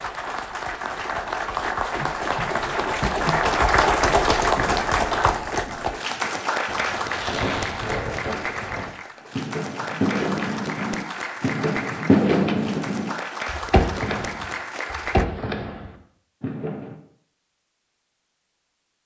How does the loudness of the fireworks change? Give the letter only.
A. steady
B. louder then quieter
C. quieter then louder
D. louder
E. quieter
B.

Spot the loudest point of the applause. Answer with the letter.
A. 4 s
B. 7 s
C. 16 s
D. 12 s
A.